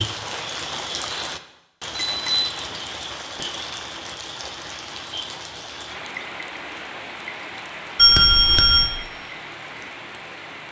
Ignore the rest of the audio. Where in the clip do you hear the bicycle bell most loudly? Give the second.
8 s.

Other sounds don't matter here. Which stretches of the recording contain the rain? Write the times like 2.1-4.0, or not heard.
0.0-10.6.